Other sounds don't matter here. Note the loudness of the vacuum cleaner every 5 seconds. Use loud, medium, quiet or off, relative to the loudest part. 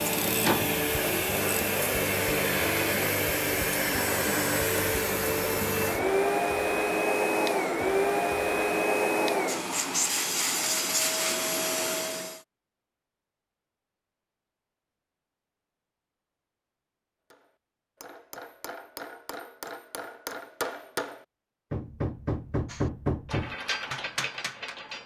loud, loud, loud, off, off.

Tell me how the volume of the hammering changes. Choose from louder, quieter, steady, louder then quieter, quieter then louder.
louder.